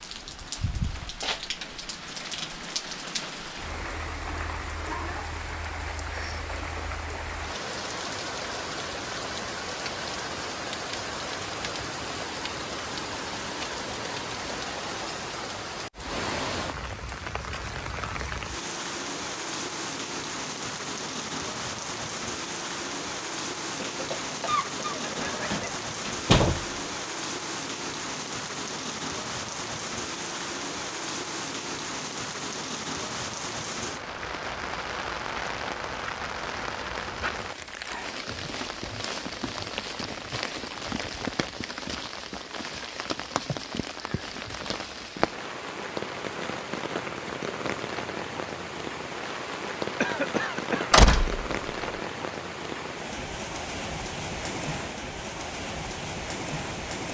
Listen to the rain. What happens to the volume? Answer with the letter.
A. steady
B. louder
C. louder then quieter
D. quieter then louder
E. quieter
A.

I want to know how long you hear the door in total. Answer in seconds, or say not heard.
2 s.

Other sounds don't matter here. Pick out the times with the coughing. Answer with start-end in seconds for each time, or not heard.
6.1-6.5, 23.8-25.8, 50.0-50.9.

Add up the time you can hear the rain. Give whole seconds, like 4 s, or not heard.
57 s.